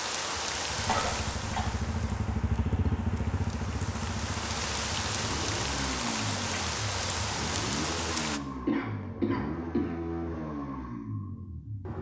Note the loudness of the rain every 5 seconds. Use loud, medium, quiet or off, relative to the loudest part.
loud, loud, off.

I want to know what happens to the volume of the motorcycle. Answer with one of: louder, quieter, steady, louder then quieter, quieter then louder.
steady.